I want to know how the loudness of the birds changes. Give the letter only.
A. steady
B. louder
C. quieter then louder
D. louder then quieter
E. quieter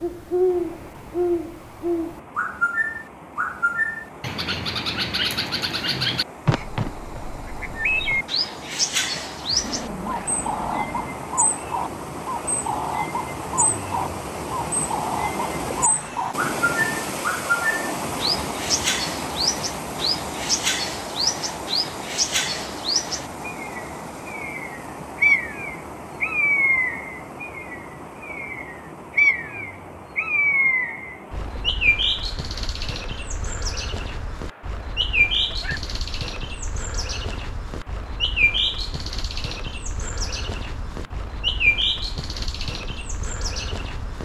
A.